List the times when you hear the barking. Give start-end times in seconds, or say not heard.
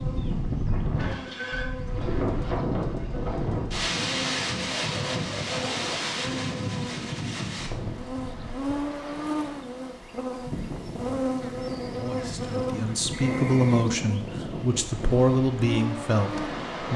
4.7-6.0.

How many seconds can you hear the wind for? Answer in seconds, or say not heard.
17 s.